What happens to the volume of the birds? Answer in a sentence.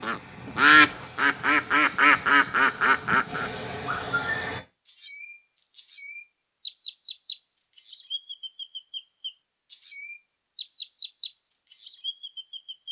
The volume of the birds goes down.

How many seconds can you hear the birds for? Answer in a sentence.
You can hear the birds for 13 seconds altogether.